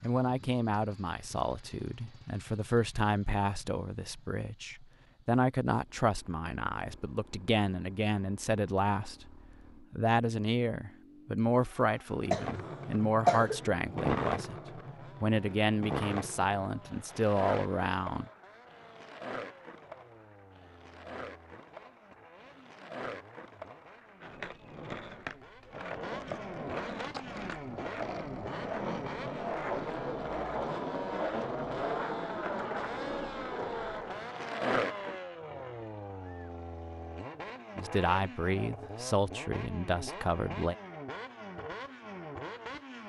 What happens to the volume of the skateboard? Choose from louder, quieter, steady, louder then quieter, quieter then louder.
quieter then louder.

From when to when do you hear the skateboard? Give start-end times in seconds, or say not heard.
12.3-35.2.